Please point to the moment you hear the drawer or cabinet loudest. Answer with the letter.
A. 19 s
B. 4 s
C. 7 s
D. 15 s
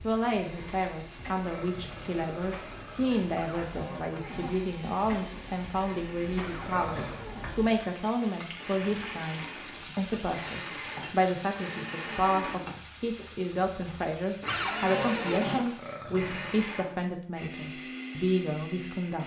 D.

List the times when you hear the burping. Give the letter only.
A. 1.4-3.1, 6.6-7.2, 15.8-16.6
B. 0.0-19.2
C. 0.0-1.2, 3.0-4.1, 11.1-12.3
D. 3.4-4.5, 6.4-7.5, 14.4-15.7
A.